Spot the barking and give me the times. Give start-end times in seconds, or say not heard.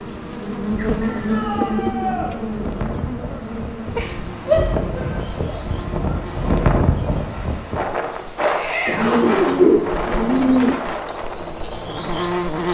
not heard.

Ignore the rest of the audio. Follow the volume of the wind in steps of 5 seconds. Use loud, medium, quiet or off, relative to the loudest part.
medium, loud, medium.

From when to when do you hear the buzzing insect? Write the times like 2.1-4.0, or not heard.
0.0-12.6.